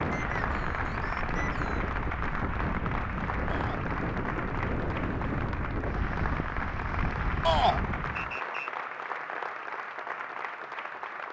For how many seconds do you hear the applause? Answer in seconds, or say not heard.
11 s.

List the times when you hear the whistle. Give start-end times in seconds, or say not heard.
0.1-1.9, 8.2-8.7.